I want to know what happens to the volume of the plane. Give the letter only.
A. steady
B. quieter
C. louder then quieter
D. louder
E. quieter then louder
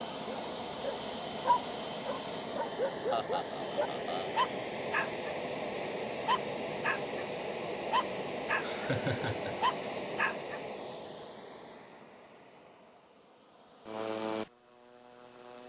B.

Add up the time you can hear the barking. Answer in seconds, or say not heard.
8 s.